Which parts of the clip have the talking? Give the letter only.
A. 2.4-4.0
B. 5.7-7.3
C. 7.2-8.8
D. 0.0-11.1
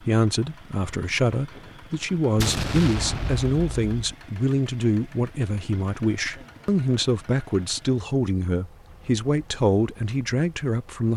D.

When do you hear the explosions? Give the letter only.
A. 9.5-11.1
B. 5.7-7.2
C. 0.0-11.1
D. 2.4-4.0
D.